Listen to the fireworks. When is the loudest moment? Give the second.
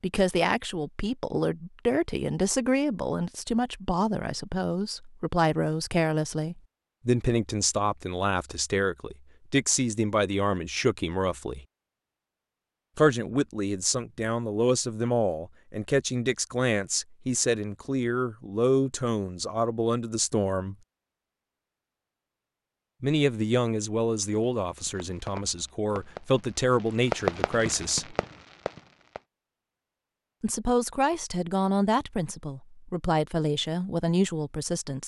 27 s.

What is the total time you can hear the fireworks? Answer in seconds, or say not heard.
5 s.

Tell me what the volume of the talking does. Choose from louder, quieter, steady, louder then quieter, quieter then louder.
steady.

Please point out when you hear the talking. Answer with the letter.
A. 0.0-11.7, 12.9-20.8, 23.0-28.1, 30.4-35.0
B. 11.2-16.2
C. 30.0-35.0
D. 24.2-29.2
A.